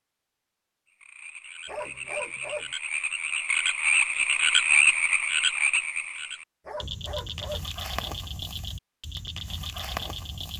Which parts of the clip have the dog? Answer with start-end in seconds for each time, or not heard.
1.6-2.7, 6.7-7.7.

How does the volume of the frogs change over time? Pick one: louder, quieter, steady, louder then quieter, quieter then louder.
louder then quieter.